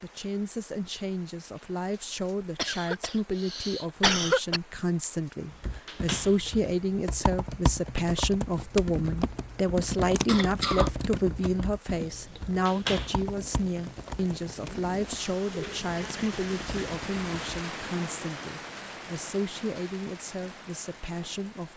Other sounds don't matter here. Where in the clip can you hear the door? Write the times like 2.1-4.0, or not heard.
5.5-6.5, 12.2-13.2.